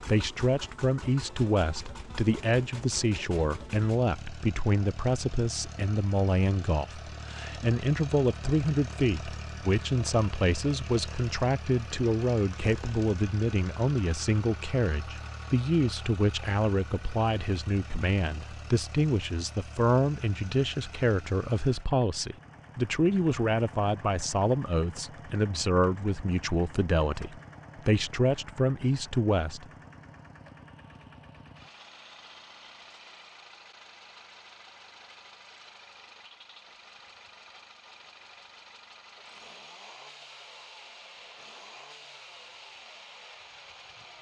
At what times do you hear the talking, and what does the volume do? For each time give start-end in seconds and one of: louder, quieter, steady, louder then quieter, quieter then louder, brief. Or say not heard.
0.0-29.6 steady.